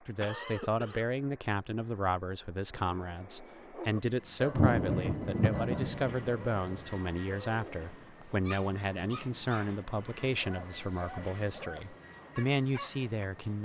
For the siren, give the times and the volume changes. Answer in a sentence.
The siren can't be heard in this clip.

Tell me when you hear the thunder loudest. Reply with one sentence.
The volume of the thunder peaks at 5 seconds.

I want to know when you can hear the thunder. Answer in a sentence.
The thunder can be heard from 4.4 to 6.7 s.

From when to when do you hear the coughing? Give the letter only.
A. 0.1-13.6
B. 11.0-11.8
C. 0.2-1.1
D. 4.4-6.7
C.